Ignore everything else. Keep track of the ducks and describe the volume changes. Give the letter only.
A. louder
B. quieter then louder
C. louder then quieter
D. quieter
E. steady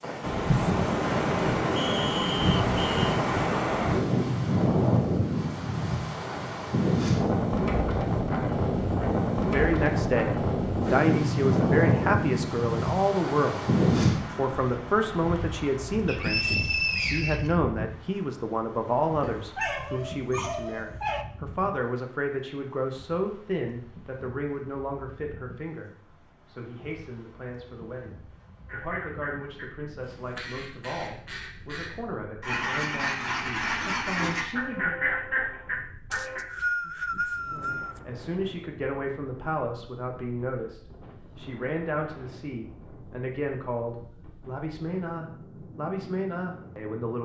A.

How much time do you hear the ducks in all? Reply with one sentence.
The ducks can be heard for 8 seconds in total.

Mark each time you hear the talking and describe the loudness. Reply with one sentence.
The talking can be heard from 9.3 to 13.7 s, at a steady volume; from 14.3 to 35.0 s, getting quieter; and from 37.5 to 47.2 s, at a steady volume.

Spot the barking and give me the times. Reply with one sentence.
The barking can be heard from 19.2 to 21.2 s.